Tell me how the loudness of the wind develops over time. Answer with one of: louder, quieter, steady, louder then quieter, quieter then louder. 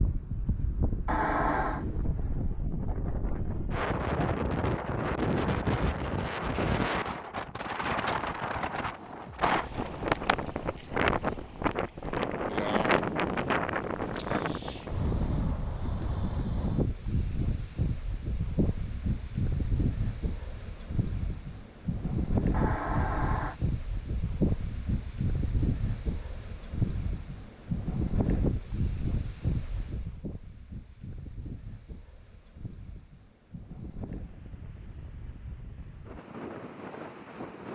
quieter.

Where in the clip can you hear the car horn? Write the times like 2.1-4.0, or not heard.
1.1-1.9, 22.5-23.6.